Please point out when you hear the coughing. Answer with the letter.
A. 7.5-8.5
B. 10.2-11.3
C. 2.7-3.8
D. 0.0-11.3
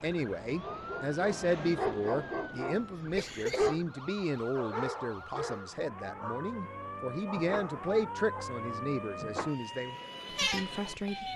C.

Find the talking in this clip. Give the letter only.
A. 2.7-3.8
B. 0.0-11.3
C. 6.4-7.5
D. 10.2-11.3
B.